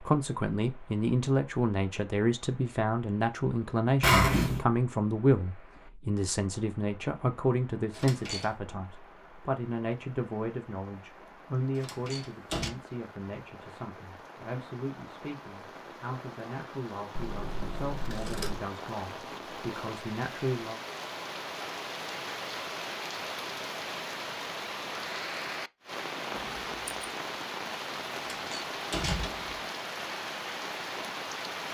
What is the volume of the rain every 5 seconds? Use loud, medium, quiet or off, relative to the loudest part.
quiet, quiet, quiet, medium, loud, loud, loud.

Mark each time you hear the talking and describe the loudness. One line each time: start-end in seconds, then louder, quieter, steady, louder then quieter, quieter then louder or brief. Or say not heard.
0.0-20.8 quieter.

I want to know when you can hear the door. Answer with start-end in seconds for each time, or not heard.
7.9-8.5, 11.8-12.7, 28.4-29.6.